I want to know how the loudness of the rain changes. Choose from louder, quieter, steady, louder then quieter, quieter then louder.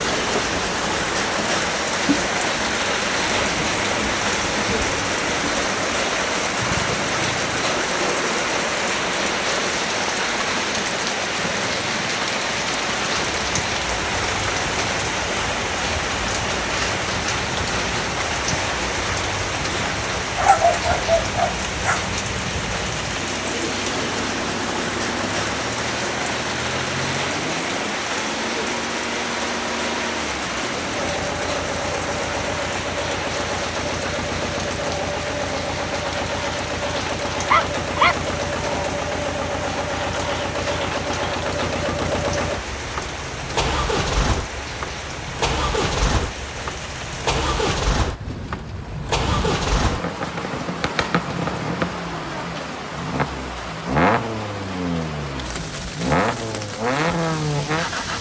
quieter.